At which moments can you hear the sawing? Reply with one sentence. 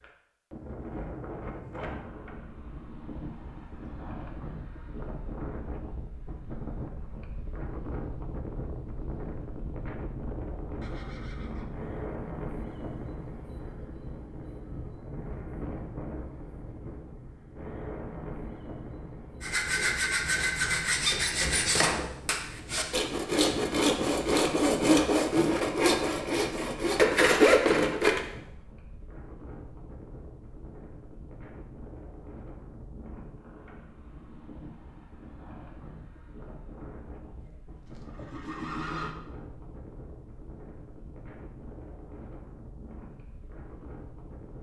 You can hear the sawing from 19.4 to 28.2 s.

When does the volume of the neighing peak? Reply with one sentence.
The loudest moment of the neighing is at 39 seconds.